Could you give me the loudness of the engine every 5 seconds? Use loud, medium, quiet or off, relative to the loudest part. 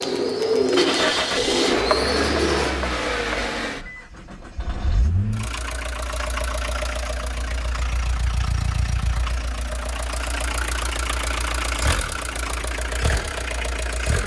loud, medium, loud.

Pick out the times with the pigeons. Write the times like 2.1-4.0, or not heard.
0.0-2.8.